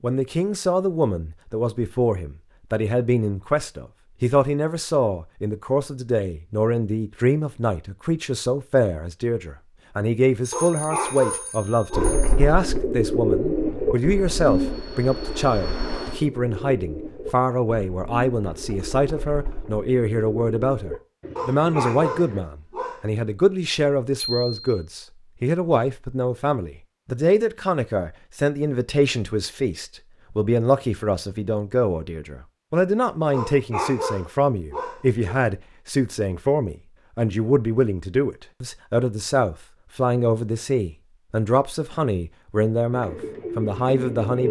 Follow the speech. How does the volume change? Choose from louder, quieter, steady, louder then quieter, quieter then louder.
steady.